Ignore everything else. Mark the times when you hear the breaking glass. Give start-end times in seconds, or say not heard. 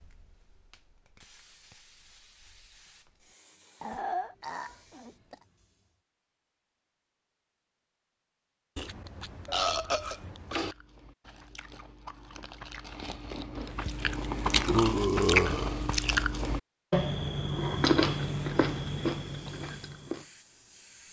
not heard.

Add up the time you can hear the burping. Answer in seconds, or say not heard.
5 s.